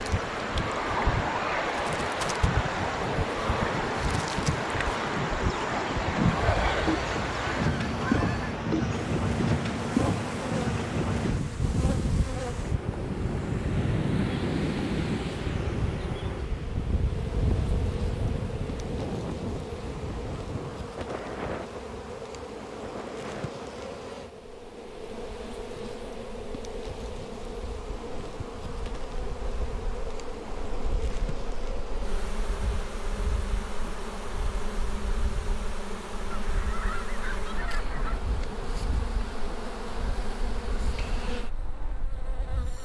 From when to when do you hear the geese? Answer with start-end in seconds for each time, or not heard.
6.3-8.6, 36.3-38.2.